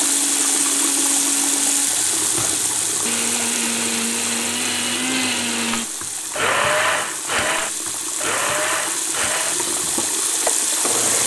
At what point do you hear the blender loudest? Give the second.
7 s.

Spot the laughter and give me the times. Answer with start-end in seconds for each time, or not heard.
not heard.